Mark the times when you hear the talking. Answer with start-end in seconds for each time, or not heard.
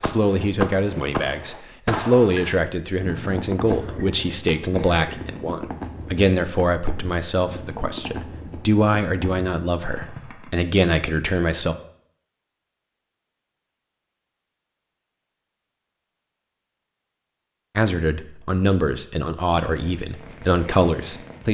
0.0-11.8, 17.8-21.4.